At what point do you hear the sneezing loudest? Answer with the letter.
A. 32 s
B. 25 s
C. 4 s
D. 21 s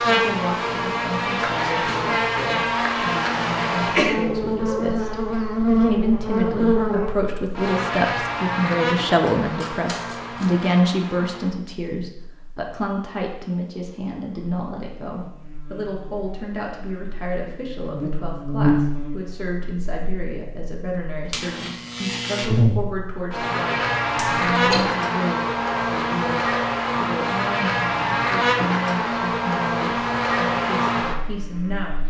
C.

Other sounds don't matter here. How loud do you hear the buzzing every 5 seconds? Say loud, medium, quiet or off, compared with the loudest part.
loud, loud, quiet, medium, loud, loud, loud.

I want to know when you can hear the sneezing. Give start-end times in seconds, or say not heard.
3.9-4.9, 24.1-24.9.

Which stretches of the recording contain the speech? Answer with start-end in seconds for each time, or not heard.
0.1-32.0.